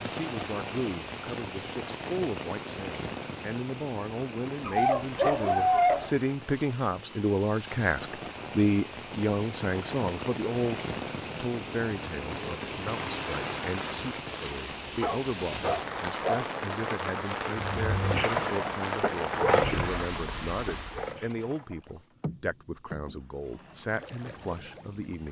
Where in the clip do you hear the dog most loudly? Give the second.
6 s.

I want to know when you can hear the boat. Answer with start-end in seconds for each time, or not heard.
17.5-25.2.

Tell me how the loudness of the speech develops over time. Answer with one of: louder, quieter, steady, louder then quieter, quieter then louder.
louder then quieter.